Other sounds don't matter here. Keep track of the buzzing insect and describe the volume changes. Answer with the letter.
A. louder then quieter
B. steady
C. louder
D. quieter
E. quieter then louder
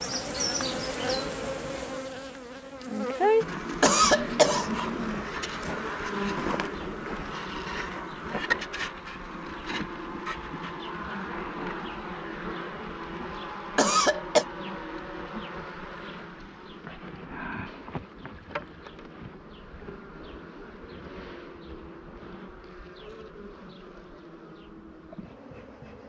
D.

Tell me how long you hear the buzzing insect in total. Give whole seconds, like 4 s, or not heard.
26 s.